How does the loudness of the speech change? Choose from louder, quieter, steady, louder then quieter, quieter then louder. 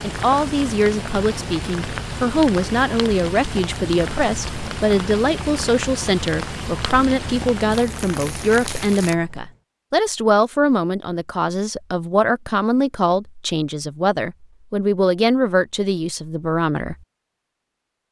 steady.